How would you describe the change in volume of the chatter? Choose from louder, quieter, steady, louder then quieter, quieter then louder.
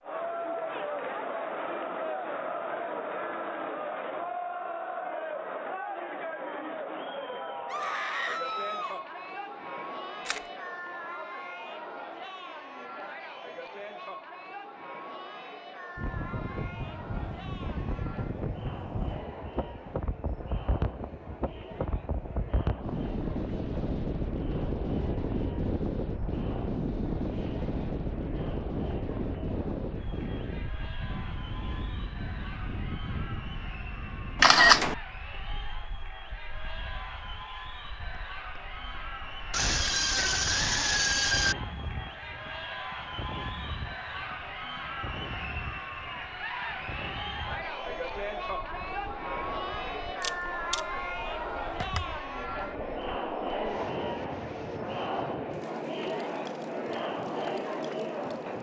quieter then louder.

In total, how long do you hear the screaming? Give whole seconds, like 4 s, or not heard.
3 s.